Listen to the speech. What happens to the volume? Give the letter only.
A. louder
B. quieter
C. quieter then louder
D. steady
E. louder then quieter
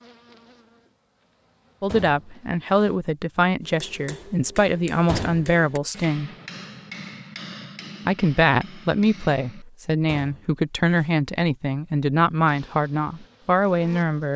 D.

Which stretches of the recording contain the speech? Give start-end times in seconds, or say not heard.
1.8-6.3, 8.1-14.3.